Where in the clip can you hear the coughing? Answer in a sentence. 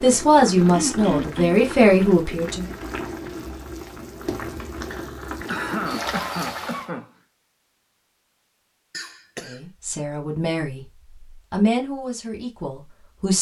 The coughing can be heard from 0.7 to 1.6 s, from 4.9 to 7.1 s and from 8.9 to 9.6 s.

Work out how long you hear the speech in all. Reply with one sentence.
You can hear the speech for 6 seconds altogether.